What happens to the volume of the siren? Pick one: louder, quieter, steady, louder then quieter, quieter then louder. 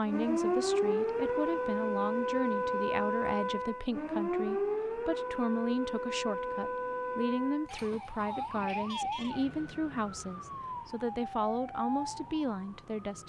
quieter.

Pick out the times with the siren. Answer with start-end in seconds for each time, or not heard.
0.0-13.2.